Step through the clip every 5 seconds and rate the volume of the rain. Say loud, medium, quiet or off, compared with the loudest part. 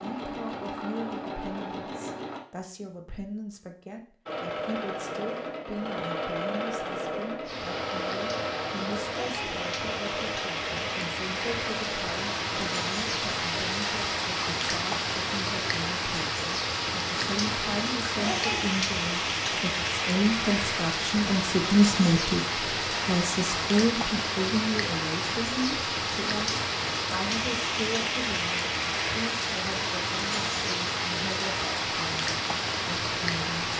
off, medium, loud, loud, loud, loud, loud.